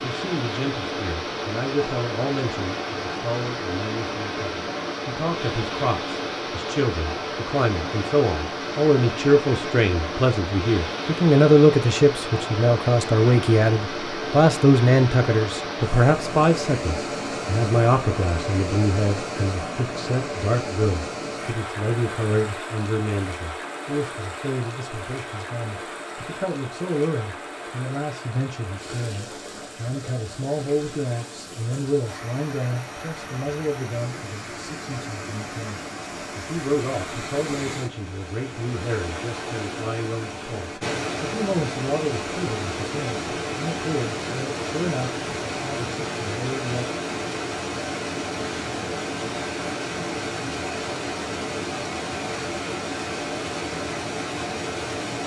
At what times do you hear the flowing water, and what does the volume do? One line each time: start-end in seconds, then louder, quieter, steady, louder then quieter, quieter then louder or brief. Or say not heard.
0.0-55.2 quieter then louder.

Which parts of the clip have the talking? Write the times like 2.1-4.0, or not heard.
0.0-46.9.